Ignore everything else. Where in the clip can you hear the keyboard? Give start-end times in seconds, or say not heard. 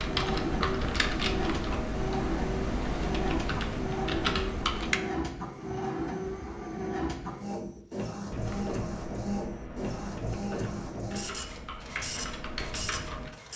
0.0-5.0, 8.3-13.3.